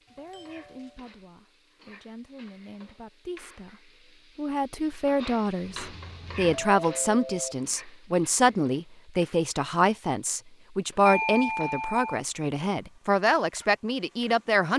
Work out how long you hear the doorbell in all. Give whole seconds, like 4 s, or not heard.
4 s.